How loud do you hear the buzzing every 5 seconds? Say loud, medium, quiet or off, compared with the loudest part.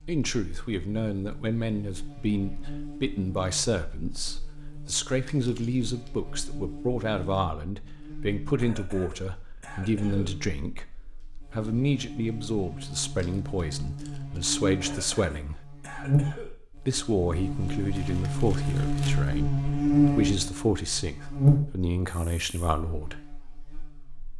quiet, quiet, medium, loud, loud.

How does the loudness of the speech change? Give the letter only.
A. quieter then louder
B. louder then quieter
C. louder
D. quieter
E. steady
E.